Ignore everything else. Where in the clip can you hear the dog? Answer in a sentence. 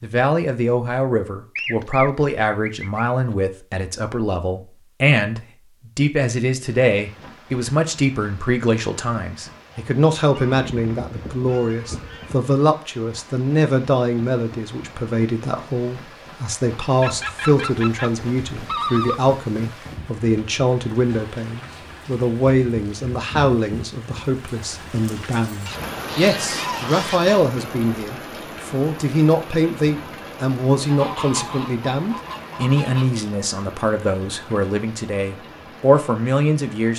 You can't hear the dog here.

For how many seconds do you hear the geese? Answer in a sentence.
You can hear the geese for 10 seconds altogether.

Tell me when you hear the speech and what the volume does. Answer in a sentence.
You can hear the speech from 0.0 to 36.9 s, at a steady volume.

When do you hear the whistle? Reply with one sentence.
You can't hear the whistle here.